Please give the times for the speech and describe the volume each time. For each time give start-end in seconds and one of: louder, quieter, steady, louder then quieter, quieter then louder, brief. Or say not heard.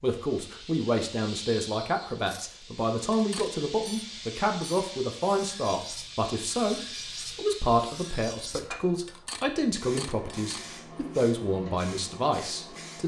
0.0-13.0 steady.